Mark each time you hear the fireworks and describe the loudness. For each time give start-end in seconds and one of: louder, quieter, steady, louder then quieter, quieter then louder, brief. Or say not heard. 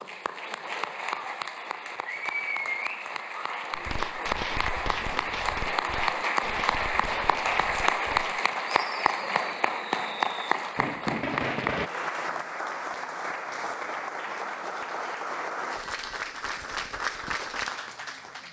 3.7-11.9 quieter then louder.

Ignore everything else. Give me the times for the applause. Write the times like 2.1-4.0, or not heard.
0.0-18.4.